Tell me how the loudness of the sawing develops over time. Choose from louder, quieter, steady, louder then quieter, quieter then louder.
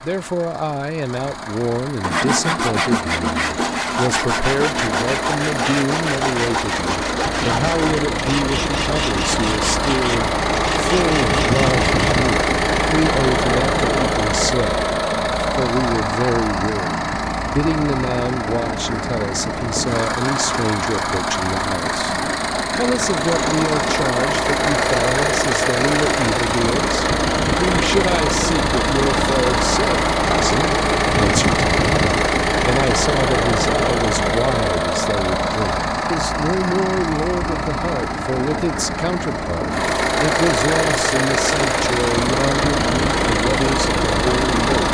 quieter.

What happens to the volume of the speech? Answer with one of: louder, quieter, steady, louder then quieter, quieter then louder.
steady.